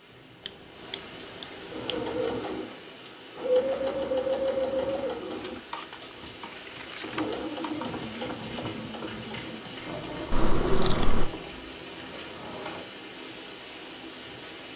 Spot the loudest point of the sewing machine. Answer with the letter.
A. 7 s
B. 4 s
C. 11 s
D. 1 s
B.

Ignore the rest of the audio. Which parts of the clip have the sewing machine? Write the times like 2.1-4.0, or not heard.
1.7-12.8.